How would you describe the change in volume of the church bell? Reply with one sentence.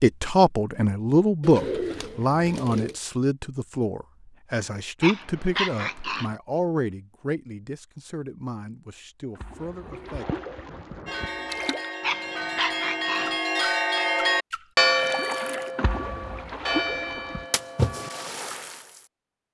The volume of the church bell goes up, then down.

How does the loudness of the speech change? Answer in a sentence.
The volume of the speech goes down.